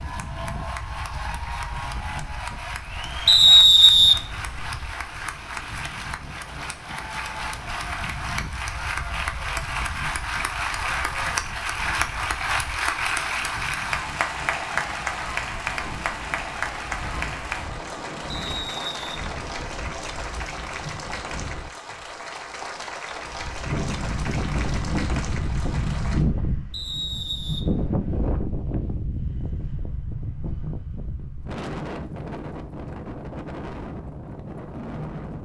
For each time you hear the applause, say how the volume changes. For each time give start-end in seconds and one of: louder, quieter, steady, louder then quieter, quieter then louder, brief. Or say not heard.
0.0-26.2 louder then quieter.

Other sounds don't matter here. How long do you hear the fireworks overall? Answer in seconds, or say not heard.
not heard.